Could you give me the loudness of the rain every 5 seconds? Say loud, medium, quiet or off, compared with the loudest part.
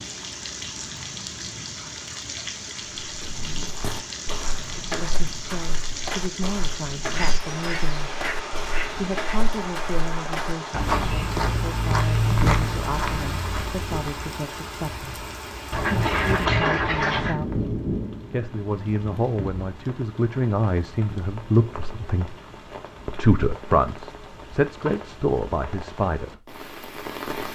loud, loud, loud, loud, medium, loud.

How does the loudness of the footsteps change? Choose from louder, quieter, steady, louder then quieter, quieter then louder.
louder.